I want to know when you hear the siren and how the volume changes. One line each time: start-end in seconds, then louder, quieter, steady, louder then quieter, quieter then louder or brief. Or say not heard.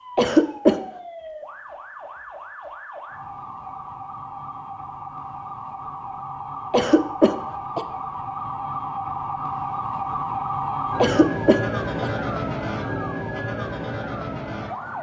0.0-14.9 louder.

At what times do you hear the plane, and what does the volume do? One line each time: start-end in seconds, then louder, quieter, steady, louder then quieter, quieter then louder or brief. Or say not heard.
not heard.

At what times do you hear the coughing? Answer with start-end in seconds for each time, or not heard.
0.1-0.8, 6.7-7.8, 11.0-12.1.